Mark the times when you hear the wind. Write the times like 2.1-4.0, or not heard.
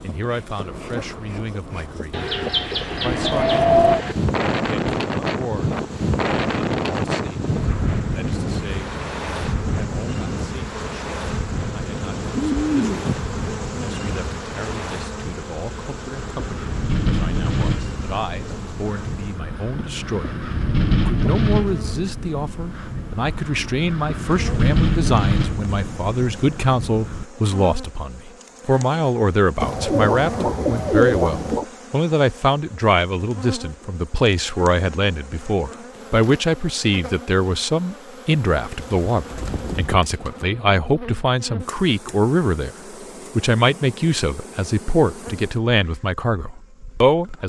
0.0-27.2.